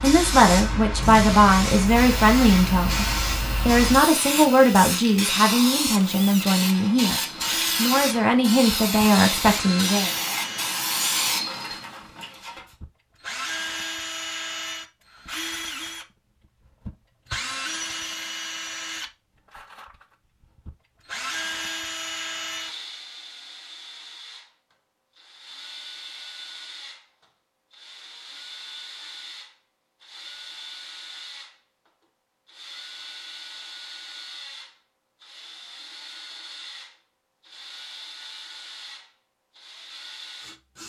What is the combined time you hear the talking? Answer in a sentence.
The talking can be heard for 10 seconds in total.